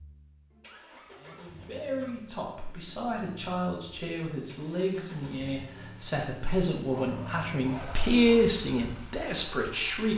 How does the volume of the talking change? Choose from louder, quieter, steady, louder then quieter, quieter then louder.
louder.